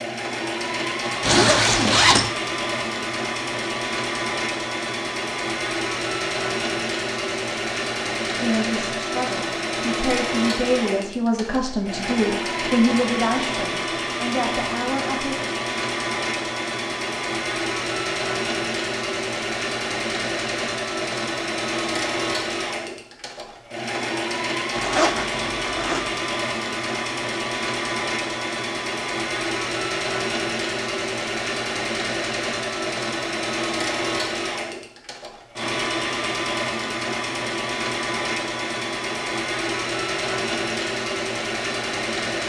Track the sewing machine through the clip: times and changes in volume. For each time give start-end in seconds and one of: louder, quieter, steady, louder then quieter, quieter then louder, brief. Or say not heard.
0.0-42.4 steady.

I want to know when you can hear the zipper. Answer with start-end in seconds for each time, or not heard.
1.2-2.3, 24.8-26.1.